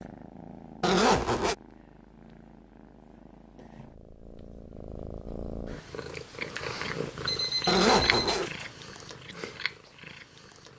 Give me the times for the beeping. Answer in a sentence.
You can hear the beeping from 7.2 to 8.7 s.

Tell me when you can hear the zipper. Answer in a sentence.
The zipper can be heard from 0.8 to 1.6 s and from 7.7 to 8.5 s.